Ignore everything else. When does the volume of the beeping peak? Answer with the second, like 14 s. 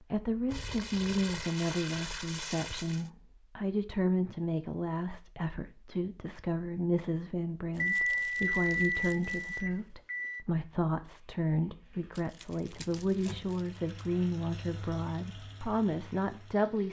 8 s.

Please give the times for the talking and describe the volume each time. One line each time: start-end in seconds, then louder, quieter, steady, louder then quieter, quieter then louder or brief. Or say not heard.
0.0-16.8 steady.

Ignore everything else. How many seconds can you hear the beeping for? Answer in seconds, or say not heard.
3 s.